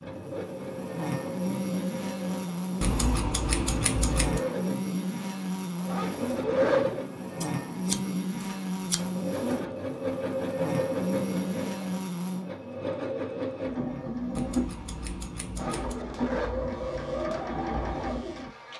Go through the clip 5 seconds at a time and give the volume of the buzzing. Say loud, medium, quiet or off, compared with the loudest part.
loud, loud, loud, quiet.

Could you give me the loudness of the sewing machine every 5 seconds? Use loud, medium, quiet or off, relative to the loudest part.
medium, loud, loud, loud.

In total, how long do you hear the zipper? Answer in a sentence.
You can hear the zipper for 2 seconds altogether.